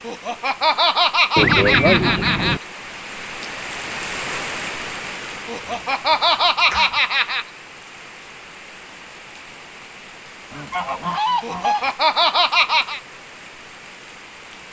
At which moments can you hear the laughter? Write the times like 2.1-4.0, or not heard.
0.1-2.6, 5.5-7.5, 11.4-13.0.